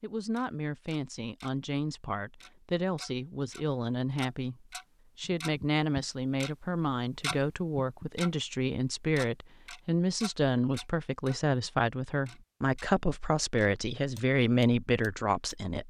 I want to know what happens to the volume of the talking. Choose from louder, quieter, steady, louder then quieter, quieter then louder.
louder.